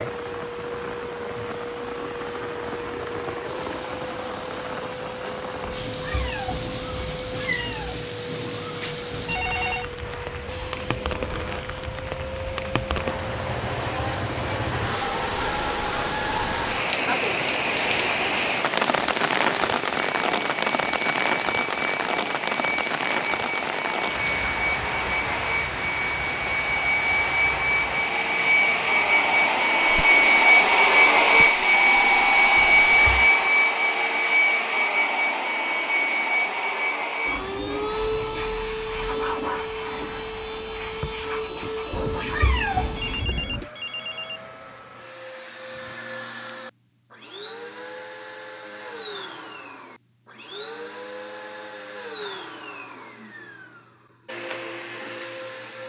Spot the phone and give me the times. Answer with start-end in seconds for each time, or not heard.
8.8-9.9, 31.9-32.5, 43.0-44.4.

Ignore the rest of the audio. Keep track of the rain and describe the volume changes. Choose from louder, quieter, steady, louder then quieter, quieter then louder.
louder then quieter.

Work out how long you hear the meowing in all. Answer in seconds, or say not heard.
5 s.